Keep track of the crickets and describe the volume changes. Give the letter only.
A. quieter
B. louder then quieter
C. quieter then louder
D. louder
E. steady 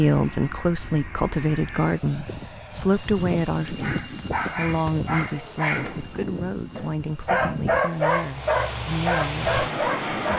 B.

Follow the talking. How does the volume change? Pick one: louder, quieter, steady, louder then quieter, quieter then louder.
quieter.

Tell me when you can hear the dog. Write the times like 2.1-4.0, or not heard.
3.8-10.3.